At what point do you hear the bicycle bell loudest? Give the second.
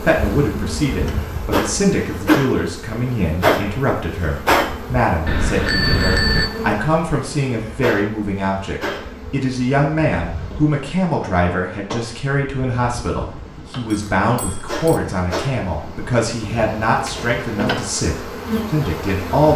6 s.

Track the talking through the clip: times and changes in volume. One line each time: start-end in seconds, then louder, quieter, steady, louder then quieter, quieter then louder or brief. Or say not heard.
0.0-19.5 steady.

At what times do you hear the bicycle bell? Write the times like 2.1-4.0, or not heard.
5.2-6.5, 13.8-15.0.